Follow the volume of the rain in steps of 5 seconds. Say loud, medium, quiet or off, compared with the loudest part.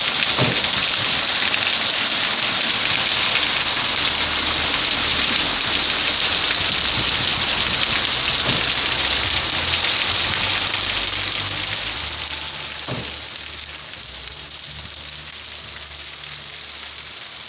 loud, loud, medium, quiet.